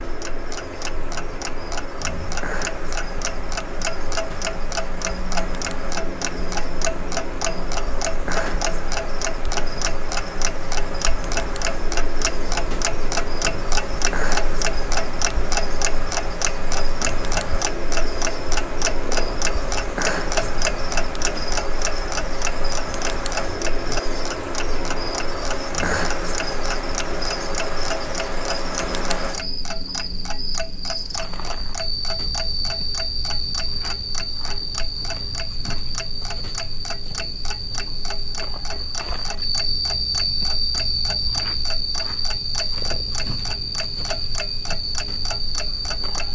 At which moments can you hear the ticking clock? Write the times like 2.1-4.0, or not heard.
0.0-46.3.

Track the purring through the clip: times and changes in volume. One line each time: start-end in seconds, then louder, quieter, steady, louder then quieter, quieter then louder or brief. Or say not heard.
not heard.